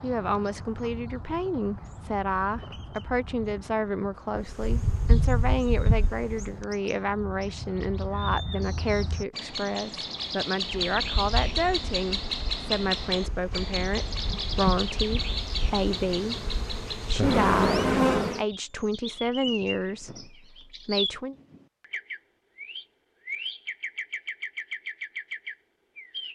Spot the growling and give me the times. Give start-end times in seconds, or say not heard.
not heard.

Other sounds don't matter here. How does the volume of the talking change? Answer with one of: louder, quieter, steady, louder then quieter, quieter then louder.
steady.